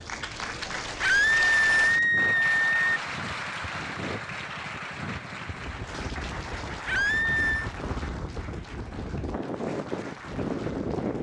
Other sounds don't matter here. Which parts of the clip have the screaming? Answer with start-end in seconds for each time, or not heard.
1.0-3.0, 6.8-7.7.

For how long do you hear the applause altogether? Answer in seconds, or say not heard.
11 s.